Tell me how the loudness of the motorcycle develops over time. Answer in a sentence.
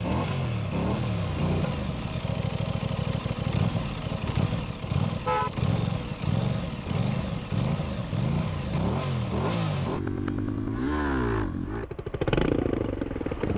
The loudness of the motorcycle stays about the same.